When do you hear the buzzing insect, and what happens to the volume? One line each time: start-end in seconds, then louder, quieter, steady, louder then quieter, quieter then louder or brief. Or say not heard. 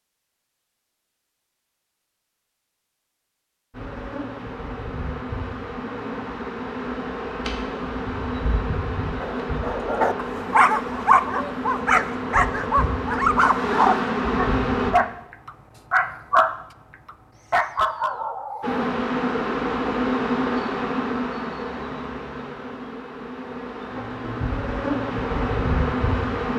3.7-14.9 louder
18.6-26.5 quieter then louder.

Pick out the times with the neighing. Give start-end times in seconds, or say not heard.
not heard.